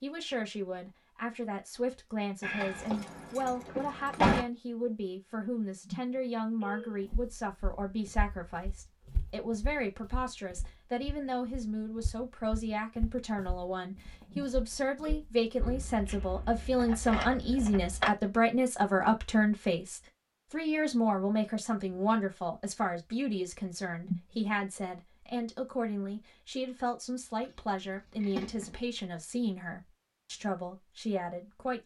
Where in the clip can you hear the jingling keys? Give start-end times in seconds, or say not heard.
2.4-4.5, 15.6-18.1, 27.4-28.8.